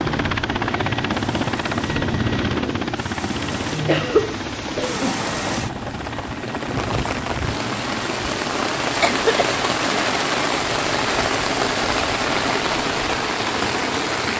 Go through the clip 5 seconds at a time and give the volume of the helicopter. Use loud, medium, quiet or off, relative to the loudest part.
loud, medium, medium.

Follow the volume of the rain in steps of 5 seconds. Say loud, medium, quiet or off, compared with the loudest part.
medium, loud, loud.